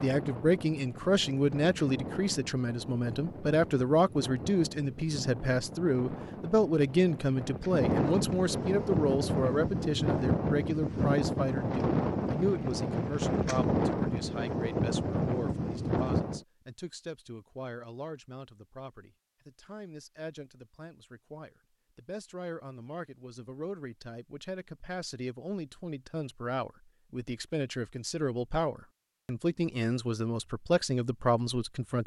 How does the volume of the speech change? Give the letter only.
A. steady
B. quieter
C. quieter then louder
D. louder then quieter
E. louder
C.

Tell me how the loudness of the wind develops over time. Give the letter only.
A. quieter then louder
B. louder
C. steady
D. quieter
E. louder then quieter
B.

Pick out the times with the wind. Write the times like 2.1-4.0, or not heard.
0.0-16.4.